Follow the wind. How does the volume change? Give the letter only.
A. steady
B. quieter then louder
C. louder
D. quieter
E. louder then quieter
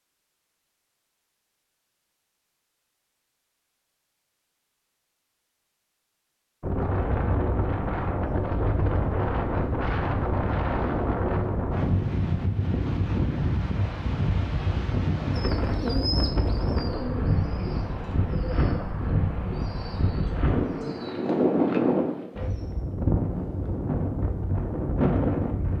A.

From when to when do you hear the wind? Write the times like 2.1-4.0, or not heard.
6.6-25.7.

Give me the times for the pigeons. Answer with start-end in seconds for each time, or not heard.
15.3-22.6.